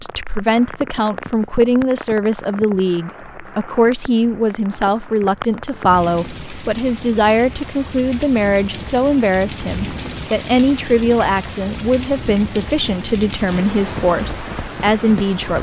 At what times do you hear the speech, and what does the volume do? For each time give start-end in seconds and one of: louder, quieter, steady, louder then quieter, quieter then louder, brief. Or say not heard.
0.0-15.5 steady.